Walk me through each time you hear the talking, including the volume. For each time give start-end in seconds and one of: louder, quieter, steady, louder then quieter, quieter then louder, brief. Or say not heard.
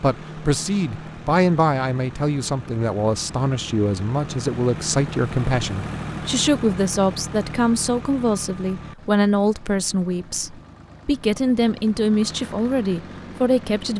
0.0-13.9 steady.